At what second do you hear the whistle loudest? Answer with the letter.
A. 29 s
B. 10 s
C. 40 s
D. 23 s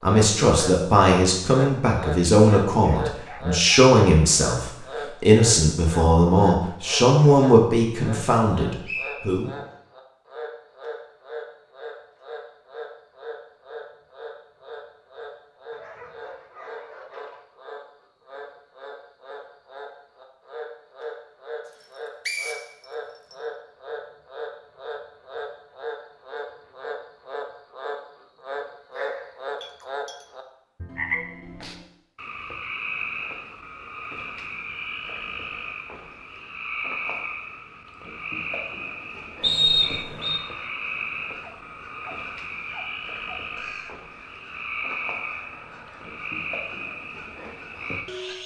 C.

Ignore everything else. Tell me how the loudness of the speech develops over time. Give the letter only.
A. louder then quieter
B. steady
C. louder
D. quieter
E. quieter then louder
B.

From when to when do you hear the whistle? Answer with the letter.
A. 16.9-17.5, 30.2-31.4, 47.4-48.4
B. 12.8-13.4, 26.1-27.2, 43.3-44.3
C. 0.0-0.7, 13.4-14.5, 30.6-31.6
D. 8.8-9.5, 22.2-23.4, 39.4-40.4
D.